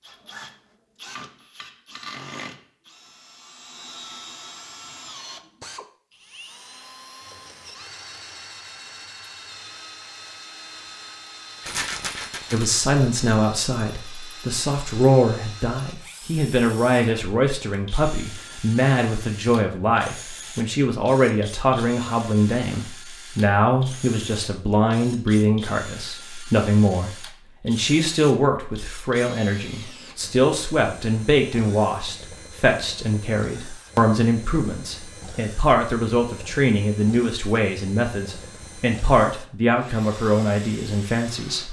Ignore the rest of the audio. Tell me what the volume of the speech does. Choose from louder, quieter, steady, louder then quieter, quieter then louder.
steady.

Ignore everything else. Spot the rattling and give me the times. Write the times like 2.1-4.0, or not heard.
11.6-12.7.